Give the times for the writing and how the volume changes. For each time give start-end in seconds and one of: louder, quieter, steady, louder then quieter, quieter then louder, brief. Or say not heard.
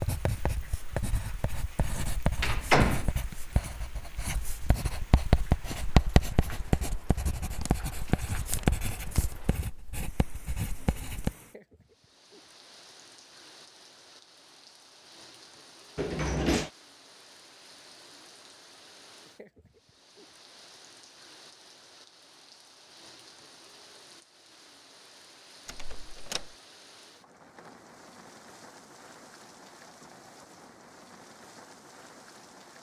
0.0-11.3 louder then quieter.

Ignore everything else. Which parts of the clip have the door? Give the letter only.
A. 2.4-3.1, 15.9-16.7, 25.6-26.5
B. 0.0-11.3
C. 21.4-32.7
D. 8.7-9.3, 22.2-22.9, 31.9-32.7
A.